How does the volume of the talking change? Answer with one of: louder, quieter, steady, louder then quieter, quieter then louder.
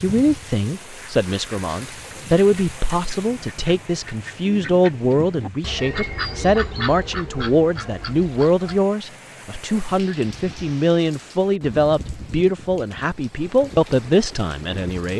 steady.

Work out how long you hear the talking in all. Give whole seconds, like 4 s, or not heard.
15 s.